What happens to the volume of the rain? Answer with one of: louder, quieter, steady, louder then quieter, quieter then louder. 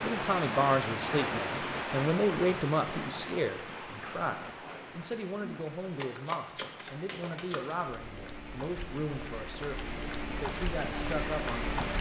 quieter then louder.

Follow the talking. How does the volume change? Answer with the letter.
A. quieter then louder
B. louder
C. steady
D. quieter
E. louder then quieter
D.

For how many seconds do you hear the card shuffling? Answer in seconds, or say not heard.
2 s.